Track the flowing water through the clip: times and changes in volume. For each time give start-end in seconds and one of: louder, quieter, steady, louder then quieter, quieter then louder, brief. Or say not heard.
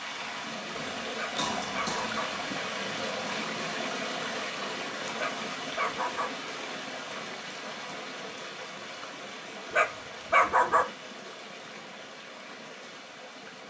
0.0-13.6 quieter.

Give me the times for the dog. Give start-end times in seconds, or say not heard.
1.1-2.3, 5.2-6.3, 9.7-10.8.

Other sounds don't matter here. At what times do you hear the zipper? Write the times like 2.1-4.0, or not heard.
not heard.